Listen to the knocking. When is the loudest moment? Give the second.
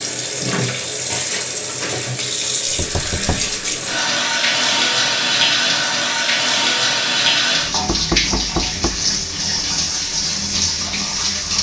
8 s.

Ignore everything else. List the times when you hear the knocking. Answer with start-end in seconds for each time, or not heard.
2.6-3.6, 7.8-9.0.